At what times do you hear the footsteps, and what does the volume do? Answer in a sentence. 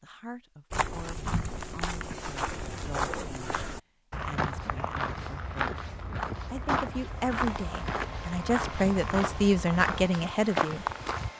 The footsteps can be heard from 0.7 to 11.3 s, at a steady volume.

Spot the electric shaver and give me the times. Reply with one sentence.
The electric shaver can't be heard in this clip.